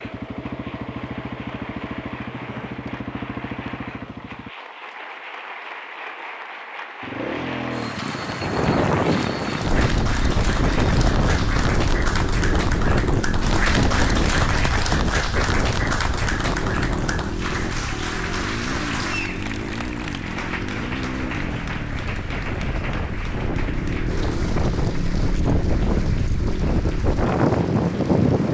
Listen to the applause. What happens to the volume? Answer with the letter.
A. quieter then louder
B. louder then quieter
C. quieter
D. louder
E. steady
B.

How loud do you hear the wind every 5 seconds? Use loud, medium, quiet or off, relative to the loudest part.
off, loud, loud, medium, medium, loud.